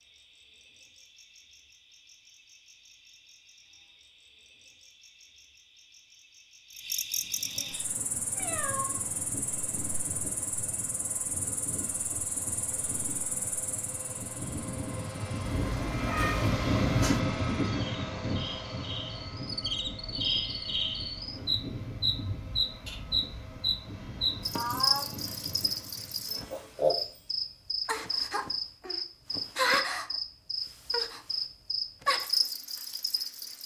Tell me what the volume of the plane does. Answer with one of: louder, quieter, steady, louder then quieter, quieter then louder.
louder then quieter.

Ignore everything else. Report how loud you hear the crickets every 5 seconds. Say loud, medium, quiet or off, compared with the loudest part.
quiet, medium, medium, medium, loud, loud, loud.